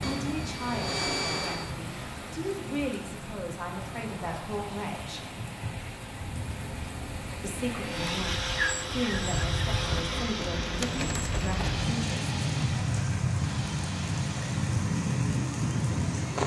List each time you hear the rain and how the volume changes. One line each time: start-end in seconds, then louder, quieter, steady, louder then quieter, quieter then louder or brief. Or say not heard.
0.0-16.4 louder.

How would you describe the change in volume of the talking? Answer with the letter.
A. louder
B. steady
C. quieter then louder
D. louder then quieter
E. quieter
B.